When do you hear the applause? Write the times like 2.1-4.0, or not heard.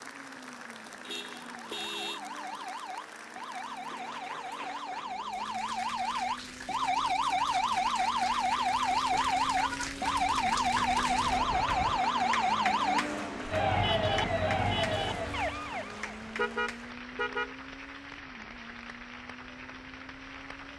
0.0-20.7.